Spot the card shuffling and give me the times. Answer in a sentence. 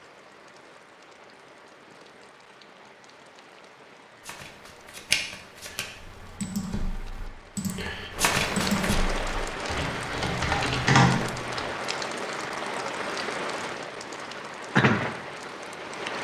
You can hear the card shuffling from 4.2 to 5.8 s and from 8.2 to 9.0 s.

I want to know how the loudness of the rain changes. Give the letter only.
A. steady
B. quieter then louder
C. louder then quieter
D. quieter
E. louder
E.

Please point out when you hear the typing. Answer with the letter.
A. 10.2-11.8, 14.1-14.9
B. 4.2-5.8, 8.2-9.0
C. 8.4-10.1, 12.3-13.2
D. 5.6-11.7
D.